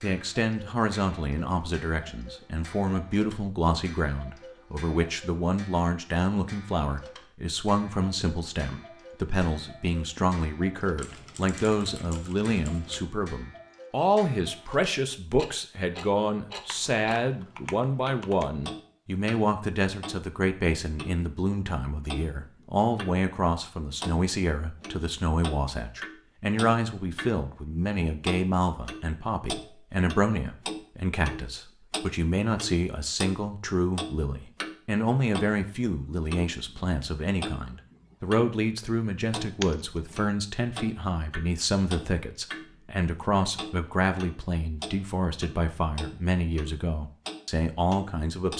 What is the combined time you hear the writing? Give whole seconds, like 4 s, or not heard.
not heard.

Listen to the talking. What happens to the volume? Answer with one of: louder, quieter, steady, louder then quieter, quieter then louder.
steady.